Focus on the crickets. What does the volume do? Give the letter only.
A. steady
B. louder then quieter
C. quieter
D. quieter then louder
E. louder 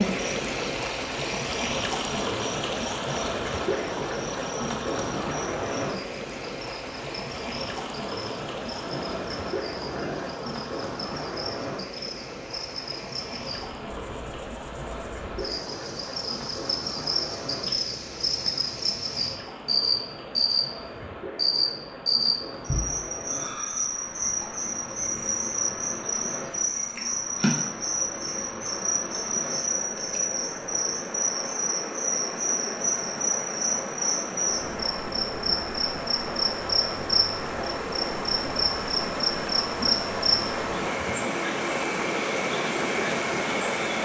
E.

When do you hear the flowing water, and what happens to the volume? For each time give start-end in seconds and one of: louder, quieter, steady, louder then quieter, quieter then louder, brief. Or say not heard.
0.0-44.0 quieter then louder.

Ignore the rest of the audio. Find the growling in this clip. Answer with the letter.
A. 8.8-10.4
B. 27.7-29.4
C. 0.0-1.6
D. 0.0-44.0
A.